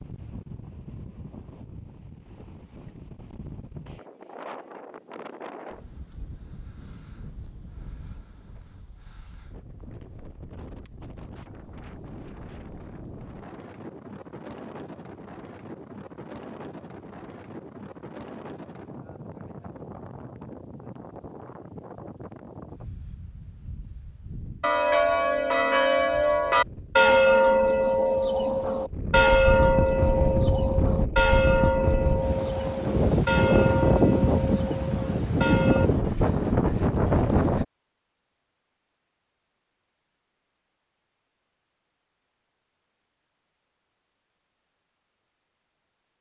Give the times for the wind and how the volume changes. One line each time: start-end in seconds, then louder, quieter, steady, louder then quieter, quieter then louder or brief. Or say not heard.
0.0-37.6 louder.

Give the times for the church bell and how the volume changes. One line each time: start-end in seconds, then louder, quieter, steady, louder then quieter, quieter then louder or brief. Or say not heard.
24.6-35.9 quieter.